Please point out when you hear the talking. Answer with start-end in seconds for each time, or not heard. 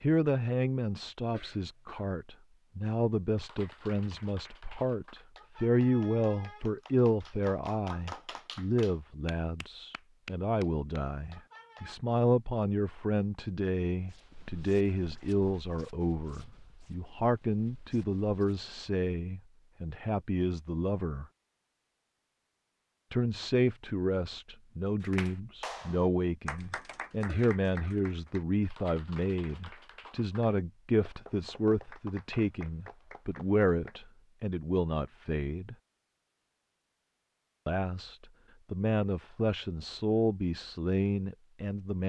0.0-21.2, 23.1-35.8, 37.6-42.0.